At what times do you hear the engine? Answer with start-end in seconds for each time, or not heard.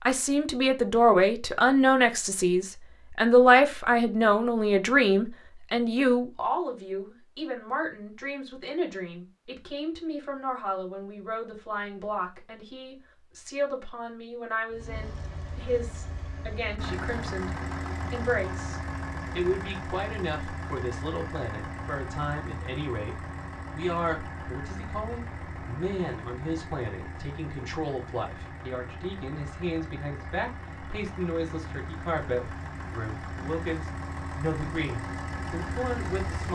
14.7-36.5.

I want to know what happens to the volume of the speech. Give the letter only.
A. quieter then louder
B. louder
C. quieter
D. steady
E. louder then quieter
C.